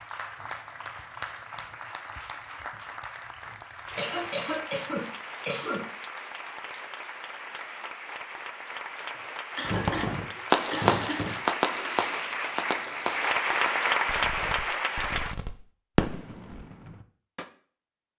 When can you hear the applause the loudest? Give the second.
14 s.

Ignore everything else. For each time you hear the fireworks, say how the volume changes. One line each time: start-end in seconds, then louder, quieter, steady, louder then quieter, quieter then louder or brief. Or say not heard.
9.7-17.4 quieter then louder.